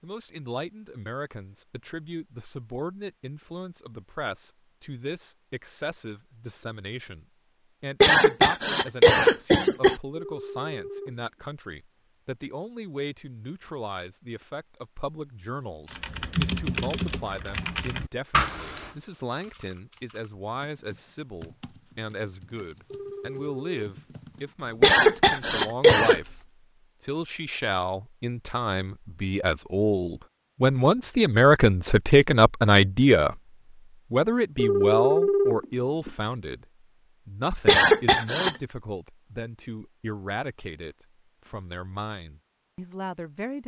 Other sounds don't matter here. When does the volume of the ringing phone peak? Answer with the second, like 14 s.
35 s.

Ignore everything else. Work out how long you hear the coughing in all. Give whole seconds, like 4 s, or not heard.
4 s.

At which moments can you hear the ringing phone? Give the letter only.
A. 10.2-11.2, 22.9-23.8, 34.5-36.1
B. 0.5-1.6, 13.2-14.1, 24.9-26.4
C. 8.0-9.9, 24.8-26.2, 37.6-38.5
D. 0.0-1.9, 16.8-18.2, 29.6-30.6
A.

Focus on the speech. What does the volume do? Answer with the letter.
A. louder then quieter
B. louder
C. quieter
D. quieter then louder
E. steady
A.